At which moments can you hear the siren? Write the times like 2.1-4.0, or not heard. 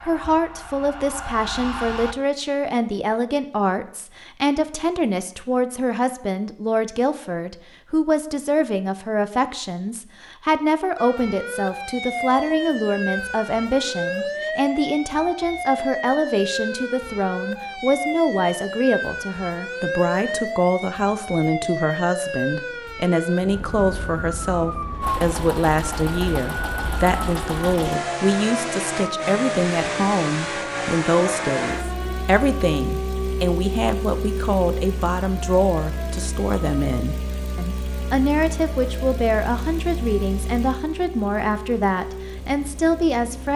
0.0-2.1, 10.9-43.5.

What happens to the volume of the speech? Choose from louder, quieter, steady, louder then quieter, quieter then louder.
steady.